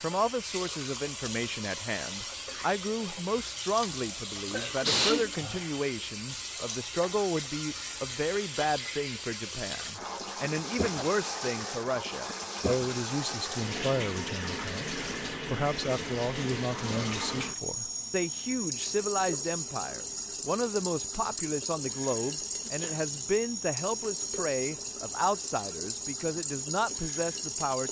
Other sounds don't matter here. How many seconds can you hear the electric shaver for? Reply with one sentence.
You can't hear the electric shaver here.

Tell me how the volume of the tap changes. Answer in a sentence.
The volume of the tap stays about the same.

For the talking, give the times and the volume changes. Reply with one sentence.
The talking can be heard from 0.0 to 27.8 s, at a steady volume.